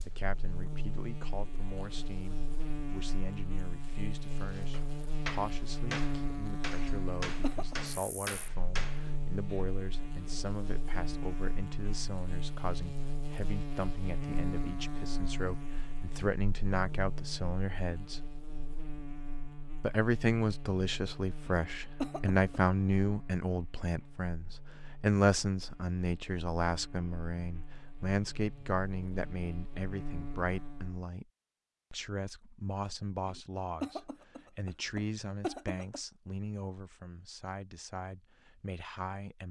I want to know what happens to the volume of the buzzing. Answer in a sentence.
The loudness of the buzzing goes down.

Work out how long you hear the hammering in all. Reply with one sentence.
You can hear the hammering for 5 seconds altogether.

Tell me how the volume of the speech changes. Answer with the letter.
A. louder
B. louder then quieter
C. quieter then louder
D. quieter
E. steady
B.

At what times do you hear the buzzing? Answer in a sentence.
The buzzing can be heard from 0.0 to 31.1 s.